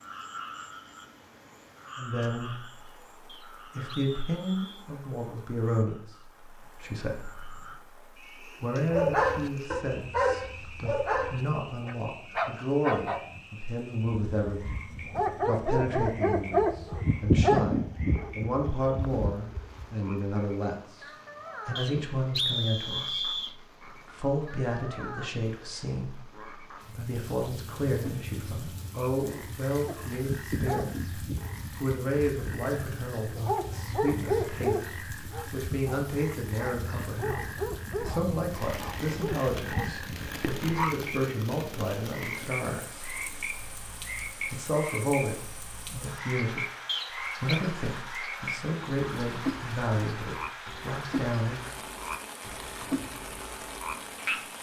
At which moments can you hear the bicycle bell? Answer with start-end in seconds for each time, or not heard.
not heard.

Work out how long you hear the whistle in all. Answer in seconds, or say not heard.
4 s.